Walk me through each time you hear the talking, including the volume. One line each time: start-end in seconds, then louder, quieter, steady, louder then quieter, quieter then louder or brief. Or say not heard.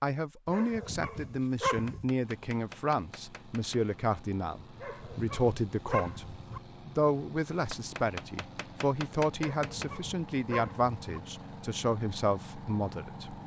0.0-13.4 steady.